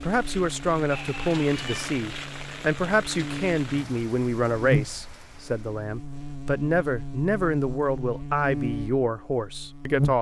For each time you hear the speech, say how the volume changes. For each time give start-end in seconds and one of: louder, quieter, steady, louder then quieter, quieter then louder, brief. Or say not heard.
0.0-10.1 steady.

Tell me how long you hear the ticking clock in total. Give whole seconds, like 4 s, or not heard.
not heard.